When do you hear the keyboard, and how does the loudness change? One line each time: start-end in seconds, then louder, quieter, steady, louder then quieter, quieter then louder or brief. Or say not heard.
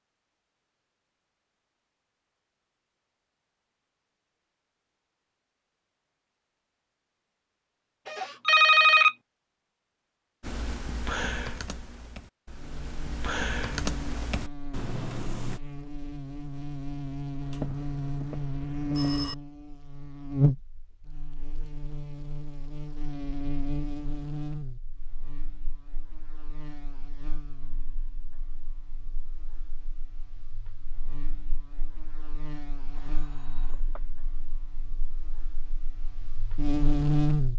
10.4-15.6 quieter then louder.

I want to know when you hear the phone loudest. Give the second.
9 s.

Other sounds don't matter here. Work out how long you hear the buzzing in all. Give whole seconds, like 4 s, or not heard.
25 s.